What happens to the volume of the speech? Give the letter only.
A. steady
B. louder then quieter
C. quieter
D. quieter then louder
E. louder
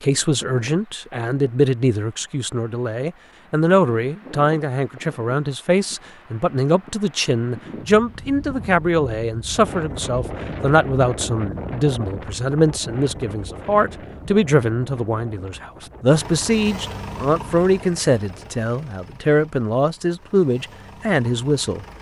A.